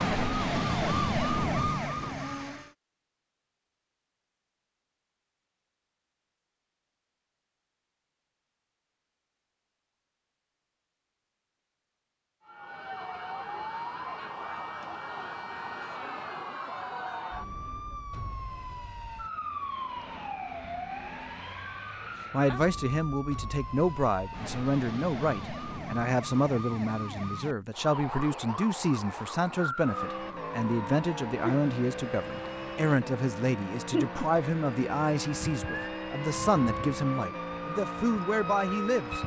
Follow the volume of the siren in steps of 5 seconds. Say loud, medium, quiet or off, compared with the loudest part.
loud, off, medium, medium, medium, medium, medium, medium.